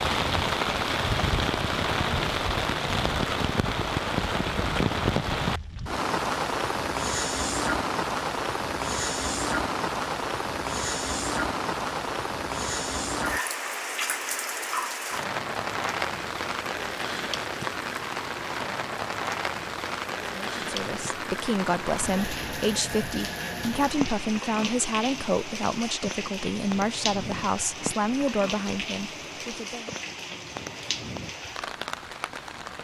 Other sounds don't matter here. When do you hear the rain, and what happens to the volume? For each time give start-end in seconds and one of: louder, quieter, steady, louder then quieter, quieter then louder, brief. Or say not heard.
0.0-32.7 quieter.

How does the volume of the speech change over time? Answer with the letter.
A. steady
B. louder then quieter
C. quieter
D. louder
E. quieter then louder
A.